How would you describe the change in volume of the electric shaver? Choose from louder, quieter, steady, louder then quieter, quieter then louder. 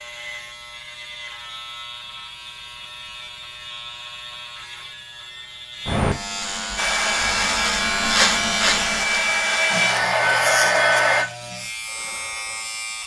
louder then quieter.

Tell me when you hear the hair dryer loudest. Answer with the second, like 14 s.
11 s.